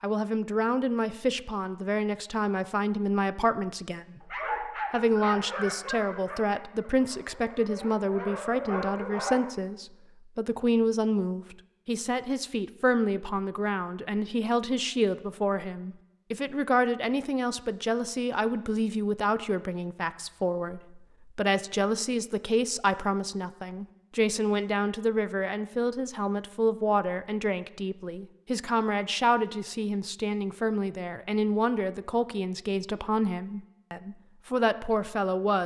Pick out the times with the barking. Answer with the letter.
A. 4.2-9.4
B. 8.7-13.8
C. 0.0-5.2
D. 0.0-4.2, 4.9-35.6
A.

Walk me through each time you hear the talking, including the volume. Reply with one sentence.
The talking can be heard from 0.0 to 4.2 s, at a steady volume; and from 4.9 to 35.6 s, at a steady volume.